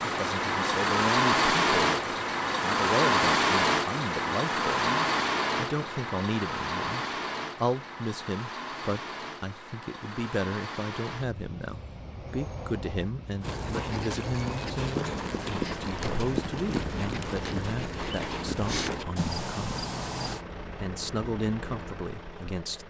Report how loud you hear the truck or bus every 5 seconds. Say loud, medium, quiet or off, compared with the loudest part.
loud, medium, quiet, quiet, quiet.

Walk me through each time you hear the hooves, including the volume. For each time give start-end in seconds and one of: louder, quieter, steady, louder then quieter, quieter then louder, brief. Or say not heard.
13.4-20.4 steady.